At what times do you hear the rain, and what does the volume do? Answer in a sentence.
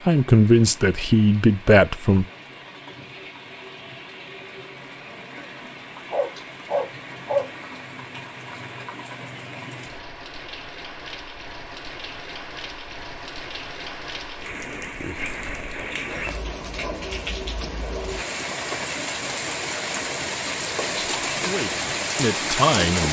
The rain can be heard from 0.0 to 23.0 s, getting louder.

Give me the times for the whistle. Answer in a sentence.
The whistle can't be heard in this clip.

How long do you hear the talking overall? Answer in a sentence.
The talking can be heard for 4 seconds in total.